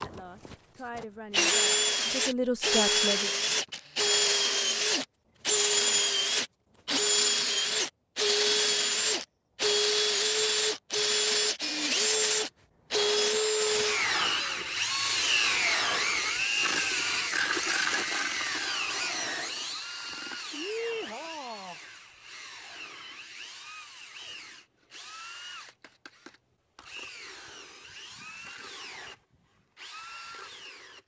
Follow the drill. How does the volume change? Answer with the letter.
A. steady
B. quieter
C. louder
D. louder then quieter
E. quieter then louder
B.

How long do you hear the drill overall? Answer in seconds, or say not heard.
31 s.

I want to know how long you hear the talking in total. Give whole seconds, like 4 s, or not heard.
3 s.